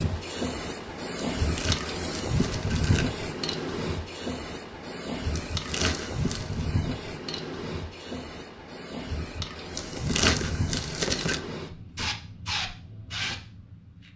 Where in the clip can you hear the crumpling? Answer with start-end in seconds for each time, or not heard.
1.4-3.0, 5.3-6.7, 9.8-11.4.